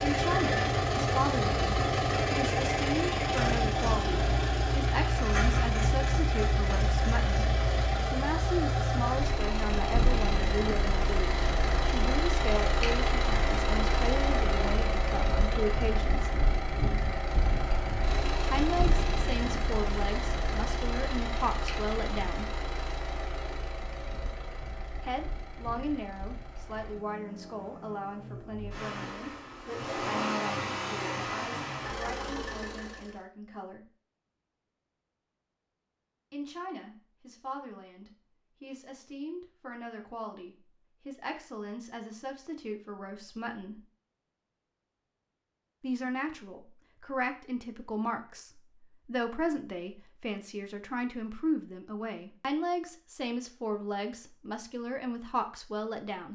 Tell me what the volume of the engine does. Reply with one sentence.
The loudness of the engine goes down.